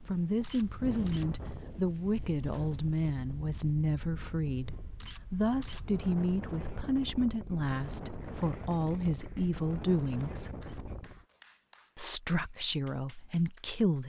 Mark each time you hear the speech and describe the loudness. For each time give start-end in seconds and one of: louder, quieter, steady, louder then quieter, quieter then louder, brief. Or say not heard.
0.1-10.6 steady
11.9-14.0 brief.